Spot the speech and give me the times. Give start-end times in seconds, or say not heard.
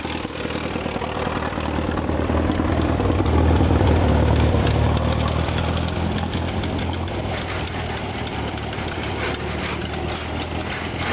not heard.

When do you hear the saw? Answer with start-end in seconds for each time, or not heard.
7.3-11.0.